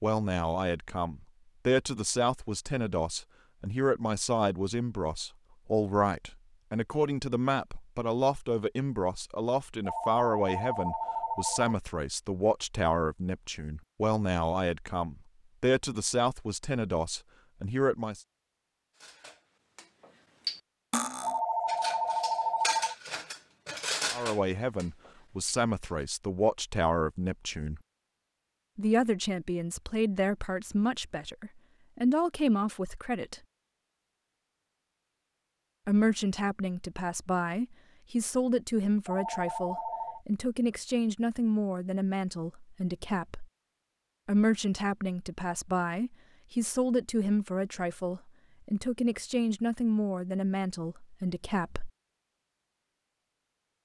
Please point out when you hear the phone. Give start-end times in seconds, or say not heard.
9.8-11.8, 21.2-22.9, 39.0-40.2.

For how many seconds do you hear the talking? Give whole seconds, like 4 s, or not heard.
42 s.